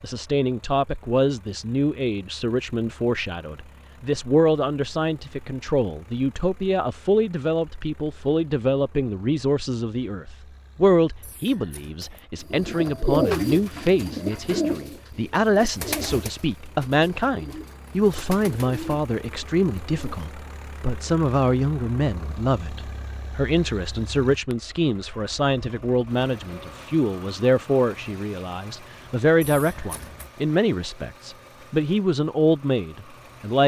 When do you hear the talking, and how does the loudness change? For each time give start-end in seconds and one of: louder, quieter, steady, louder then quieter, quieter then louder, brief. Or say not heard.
0.0-33.6 steady.